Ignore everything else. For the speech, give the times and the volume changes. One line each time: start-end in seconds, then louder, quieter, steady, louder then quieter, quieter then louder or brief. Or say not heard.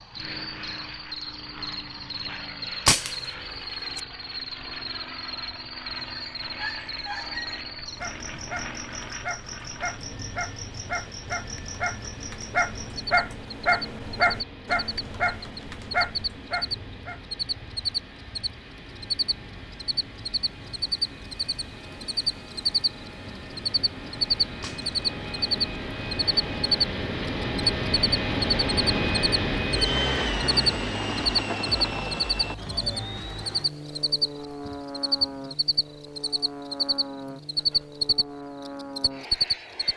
not heard.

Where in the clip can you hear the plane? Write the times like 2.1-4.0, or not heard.
0.0-39.9.